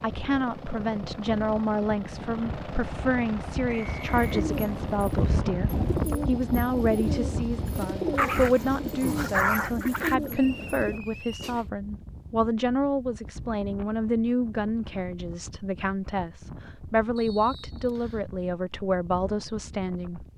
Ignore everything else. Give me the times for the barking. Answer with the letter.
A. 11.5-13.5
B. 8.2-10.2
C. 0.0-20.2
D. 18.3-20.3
B.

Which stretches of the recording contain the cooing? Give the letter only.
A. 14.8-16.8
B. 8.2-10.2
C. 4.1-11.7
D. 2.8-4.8
C.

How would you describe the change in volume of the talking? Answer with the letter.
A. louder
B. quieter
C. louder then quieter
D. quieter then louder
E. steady
E.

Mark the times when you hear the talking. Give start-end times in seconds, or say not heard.
0.0-20.2.